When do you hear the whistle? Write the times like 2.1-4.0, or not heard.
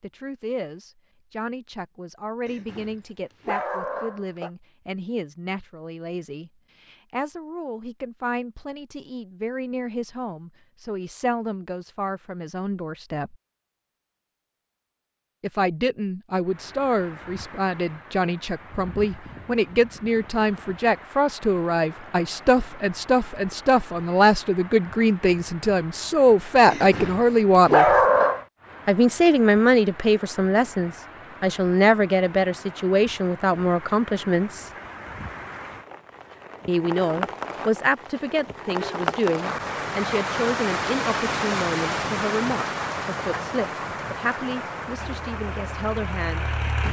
not heard.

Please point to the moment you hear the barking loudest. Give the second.
28 s.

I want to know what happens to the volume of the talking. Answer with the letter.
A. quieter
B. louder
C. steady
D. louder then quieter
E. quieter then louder
D.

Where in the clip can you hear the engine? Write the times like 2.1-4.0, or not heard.
44.9-46.8.